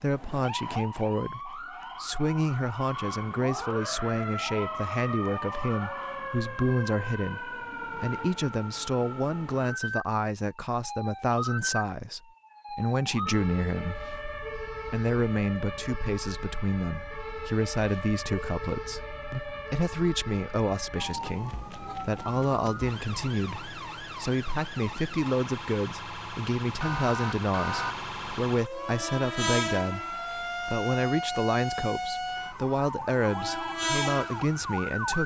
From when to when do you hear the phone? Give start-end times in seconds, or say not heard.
not heard.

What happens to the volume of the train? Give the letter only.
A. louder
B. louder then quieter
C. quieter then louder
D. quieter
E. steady
C.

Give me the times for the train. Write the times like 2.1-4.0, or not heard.
28.7-35.2.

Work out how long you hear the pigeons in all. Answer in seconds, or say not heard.
not heard.